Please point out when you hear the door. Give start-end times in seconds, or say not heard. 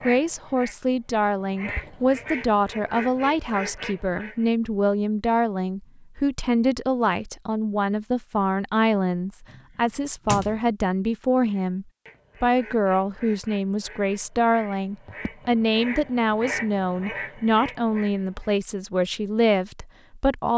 9.4-10.7.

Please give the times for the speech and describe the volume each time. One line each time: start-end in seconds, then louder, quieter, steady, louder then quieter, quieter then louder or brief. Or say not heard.
0.0-20.5 steady.